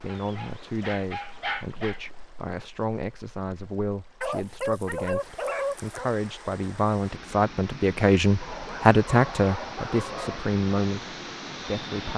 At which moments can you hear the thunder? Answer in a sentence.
You can't hear the thunder here.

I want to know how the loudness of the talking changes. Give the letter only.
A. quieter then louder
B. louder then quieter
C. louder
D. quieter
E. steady
B.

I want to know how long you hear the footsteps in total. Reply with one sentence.
You can't hear the footsteps here.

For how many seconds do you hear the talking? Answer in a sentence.
You can hear the talking for 12 seconds altogether.